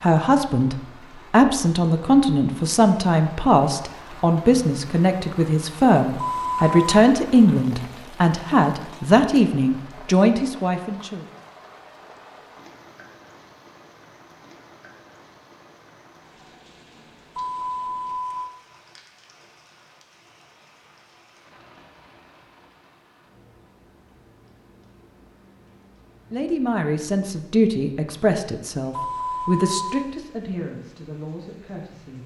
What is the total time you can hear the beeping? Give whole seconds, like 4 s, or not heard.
3 s.